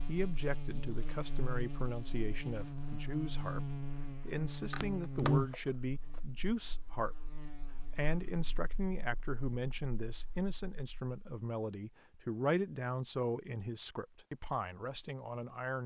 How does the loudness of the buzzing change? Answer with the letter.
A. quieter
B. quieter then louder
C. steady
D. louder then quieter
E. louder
D.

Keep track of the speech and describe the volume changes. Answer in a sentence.
The loudness of the speech stays about the same.